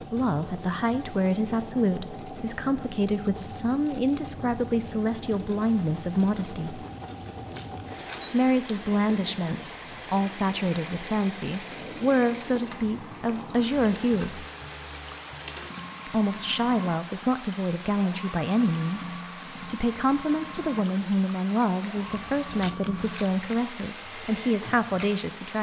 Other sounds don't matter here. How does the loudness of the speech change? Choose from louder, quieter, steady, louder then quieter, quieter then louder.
steady.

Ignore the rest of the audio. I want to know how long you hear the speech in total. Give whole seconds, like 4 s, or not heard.
22 s.